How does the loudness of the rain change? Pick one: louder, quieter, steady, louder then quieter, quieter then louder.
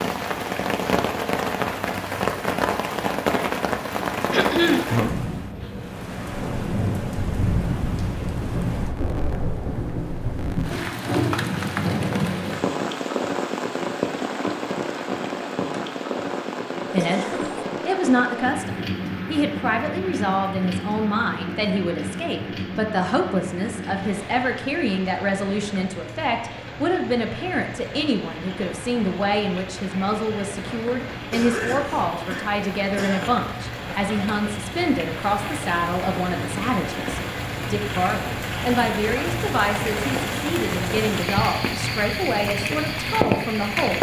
quieter then louder.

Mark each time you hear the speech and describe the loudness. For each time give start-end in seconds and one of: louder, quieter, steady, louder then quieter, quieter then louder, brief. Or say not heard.
16.9-43.9 steady.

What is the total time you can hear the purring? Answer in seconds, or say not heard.
not heard.